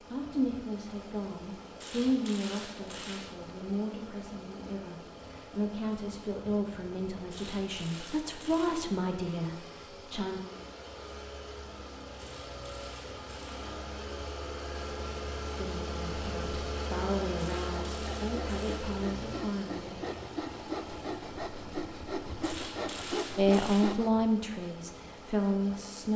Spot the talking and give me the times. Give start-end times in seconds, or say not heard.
0.0-10.4, 15.6-20.0, 23.4-26.1.